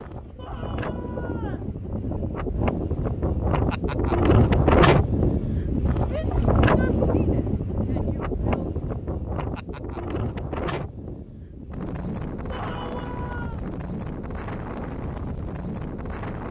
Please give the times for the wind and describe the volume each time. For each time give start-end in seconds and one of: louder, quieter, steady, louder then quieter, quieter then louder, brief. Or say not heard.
0.0-16.4 louder then quieter.